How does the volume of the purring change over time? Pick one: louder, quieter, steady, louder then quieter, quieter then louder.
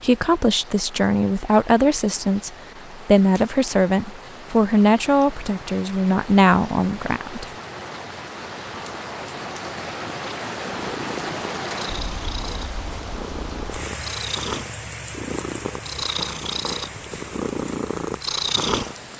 louder.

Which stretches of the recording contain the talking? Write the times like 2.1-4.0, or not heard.
0.0-7.5.